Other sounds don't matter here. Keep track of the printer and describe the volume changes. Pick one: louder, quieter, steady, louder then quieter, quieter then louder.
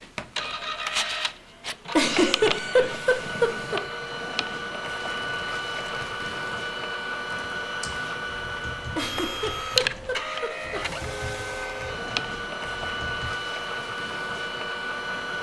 steady.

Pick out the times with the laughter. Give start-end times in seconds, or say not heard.
1.9-3.8, 8.9-10.8.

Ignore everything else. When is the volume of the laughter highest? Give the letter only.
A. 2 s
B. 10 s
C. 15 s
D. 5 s
A.